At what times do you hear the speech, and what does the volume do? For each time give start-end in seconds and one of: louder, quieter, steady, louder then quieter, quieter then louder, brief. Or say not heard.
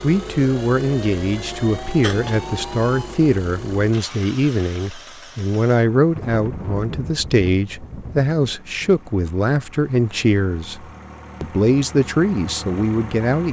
0.0-13.4 steady.